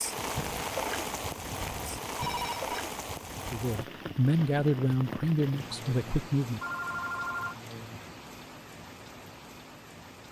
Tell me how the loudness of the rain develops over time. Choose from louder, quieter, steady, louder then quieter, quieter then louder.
quieter.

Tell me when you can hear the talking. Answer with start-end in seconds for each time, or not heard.
3.5-6.6.